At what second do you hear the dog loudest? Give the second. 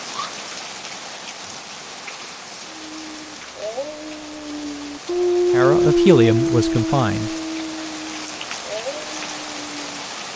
6 s.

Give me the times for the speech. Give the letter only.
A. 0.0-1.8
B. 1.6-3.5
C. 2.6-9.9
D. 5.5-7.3
D.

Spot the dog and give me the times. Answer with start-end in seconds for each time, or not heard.
2.6-9.9.